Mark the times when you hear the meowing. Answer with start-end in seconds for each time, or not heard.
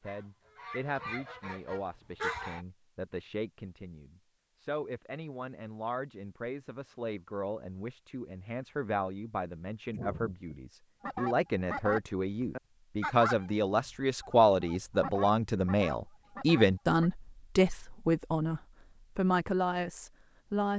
9.9-10.6.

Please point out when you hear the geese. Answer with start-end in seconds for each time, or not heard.
0.0-2.6, 11.0-17.1.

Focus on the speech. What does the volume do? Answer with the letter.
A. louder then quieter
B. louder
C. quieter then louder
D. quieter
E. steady
B.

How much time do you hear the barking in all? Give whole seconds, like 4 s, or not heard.
not heard.